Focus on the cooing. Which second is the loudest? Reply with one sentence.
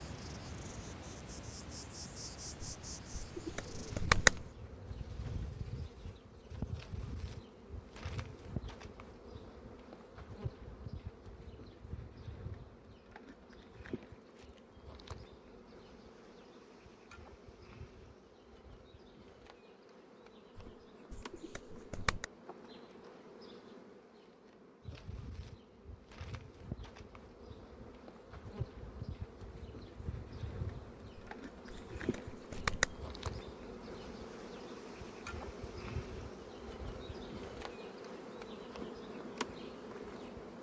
The loudest moment of the cooing is at 4 seconds.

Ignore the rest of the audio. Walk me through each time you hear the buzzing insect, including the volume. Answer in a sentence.
You can hear the buzzing insect from 0.0 to 40.5 s, getting quieter then louder.